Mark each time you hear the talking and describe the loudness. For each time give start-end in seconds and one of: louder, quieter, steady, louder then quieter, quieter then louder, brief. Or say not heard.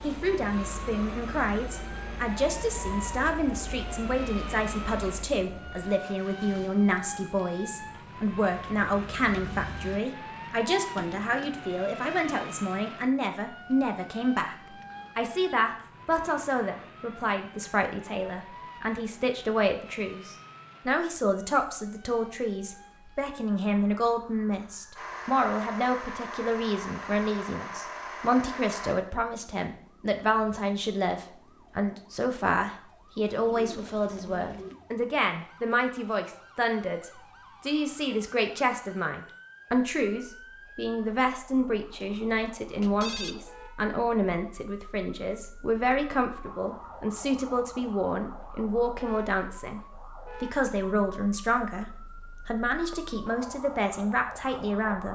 0.0-55.1 steady.